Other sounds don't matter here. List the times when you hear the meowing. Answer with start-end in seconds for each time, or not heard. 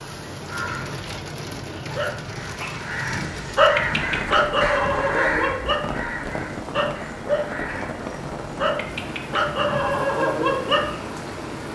not heard.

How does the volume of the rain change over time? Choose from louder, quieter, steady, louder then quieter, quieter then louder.
steady.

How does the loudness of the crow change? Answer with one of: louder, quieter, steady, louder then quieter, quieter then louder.
louder then quieter.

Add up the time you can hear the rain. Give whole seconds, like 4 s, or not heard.
12 s.